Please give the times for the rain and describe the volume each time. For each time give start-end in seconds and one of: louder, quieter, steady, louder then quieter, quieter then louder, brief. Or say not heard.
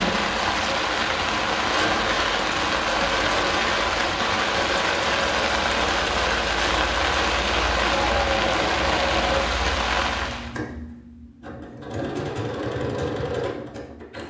0.0-10.6 steady.